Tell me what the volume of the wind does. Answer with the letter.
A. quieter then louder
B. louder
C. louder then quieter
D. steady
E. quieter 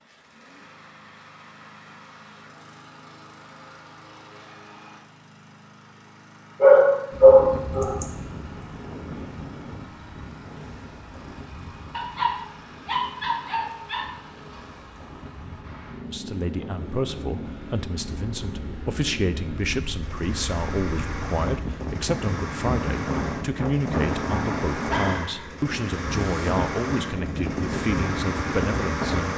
A.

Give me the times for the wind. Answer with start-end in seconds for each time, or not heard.
7.1-29.3.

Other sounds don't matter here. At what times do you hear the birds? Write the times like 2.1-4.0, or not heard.
not heard.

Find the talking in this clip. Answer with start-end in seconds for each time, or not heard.
16.1-29.3.